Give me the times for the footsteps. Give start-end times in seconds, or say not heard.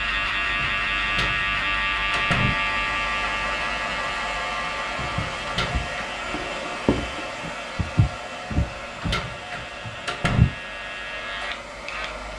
5.1-10.6.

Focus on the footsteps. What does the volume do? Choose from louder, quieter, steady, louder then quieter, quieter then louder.
louder then quieter.